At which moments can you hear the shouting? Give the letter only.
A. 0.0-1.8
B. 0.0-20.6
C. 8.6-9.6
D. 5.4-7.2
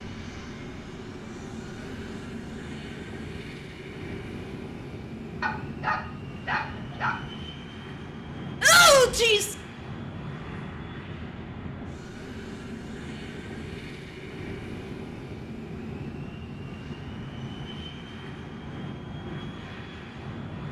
C.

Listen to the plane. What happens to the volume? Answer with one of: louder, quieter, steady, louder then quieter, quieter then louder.
steady.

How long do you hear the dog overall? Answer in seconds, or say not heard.
2 s.